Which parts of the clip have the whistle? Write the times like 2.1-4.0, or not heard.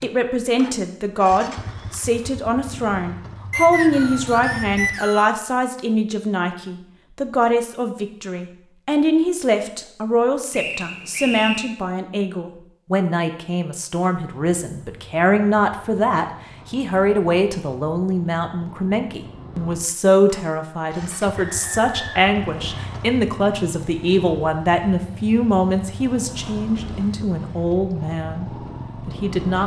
3.5-5.3, 10.5-11.8, 21.4-23.1.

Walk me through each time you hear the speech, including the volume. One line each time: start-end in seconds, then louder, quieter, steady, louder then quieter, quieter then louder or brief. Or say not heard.
0.0-29.6 steady.